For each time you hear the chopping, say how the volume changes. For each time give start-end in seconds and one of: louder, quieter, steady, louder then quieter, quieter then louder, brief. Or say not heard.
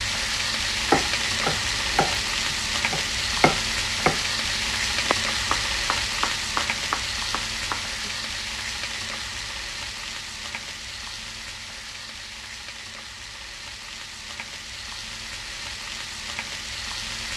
0.8-8.1 steady.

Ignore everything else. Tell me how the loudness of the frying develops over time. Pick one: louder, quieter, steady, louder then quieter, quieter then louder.
quieter.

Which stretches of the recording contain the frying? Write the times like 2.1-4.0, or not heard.
0.0-17.3.